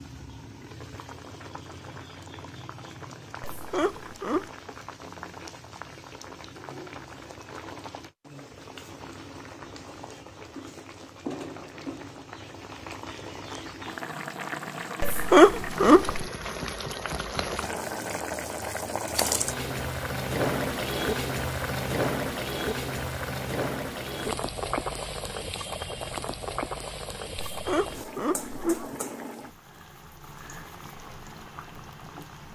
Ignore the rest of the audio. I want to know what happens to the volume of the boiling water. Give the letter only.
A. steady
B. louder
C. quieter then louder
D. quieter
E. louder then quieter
E.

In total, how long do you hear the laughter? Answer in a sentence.
The laughter can be heard for 4 seconds in total.